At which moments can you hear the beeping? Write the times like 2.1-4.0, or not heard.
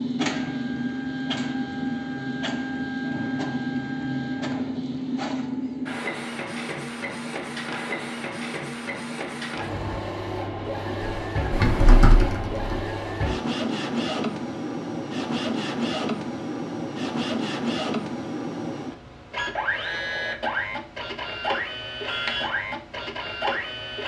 not heard.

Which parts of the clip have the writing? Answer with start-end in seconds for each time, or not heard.
not heard.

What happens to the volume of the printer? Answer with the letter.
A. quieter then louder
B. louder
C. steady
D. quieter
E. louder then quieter
C.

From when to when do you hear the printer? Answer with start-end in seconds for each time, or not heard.
0.0-24.0.